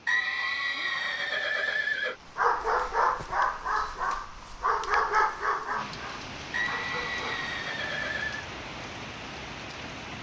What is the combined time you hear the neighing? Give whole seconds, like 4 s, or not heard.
4 s.